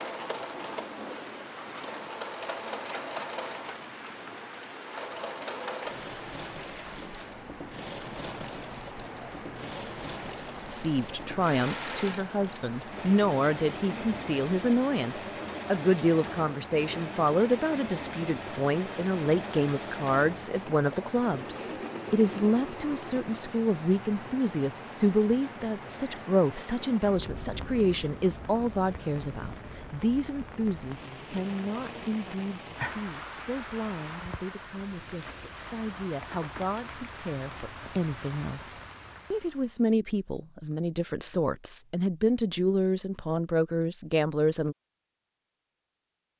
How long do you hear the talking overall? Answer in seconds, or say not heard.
34 s.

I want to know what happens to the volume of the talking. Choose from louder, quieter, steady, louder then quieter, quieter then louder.
quieter then louder.